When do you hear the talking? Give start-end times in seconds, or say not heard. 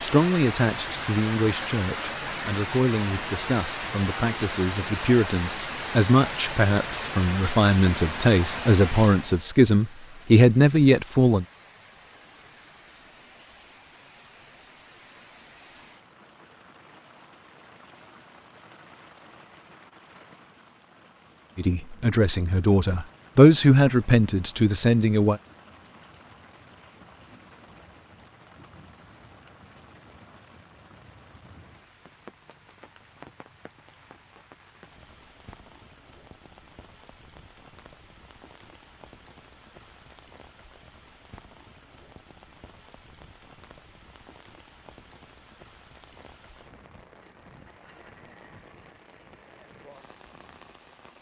0.0-11.4, 21.6-25.4.